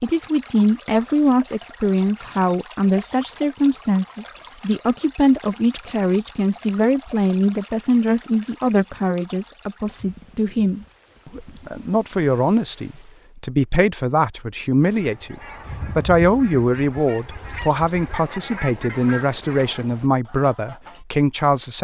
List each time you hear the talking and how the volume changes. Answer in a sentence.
You can hear the talking from 0.0 to 21.7 s, at a steady volume.